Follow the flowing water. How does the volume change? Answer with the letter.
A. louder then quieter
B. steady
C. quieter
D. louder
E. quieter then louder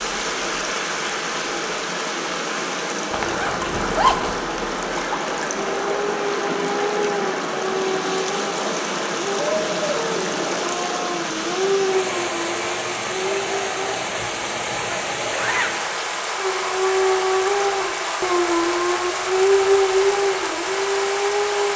B.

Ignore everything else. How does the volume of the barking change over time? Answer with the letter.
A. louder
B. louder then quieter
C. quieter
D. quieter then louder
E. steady
A.